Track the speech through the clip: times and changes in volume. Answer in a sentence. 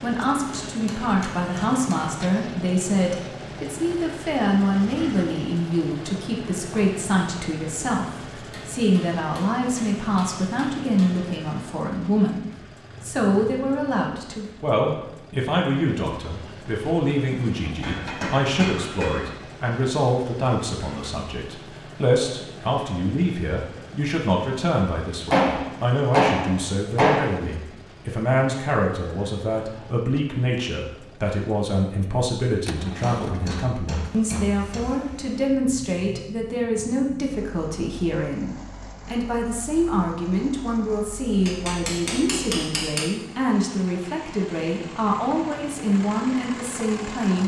You can hear the speech from 0.0 to 47.4 s, at a steady volume.